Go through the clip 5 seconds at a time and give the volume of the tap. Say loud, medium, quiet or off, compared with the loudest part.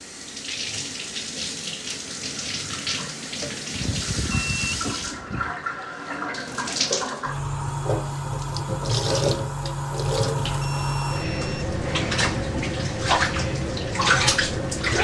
medium, loud, loud.